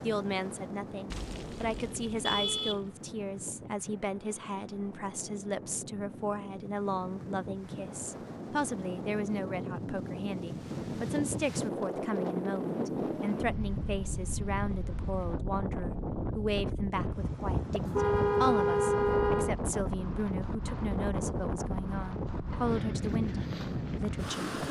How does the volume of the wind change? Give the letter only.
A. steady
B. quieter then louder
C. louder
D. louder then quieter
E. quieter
C.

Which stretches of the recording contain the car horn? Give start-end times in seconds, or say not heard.
1.1-2.9, 17.7-19.6.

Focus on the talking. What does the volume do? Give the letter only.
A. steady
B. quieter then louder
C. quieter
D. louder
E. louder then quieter
A.